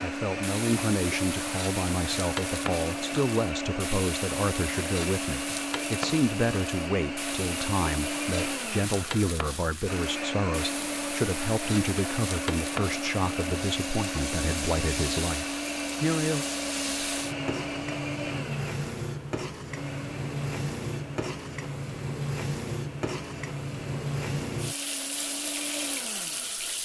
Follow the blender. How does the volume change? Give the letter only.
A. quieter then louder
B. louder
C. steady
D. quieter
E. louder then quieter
D.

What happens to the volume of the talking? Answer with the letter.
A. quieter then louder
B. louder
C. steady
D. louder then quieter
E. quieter
C.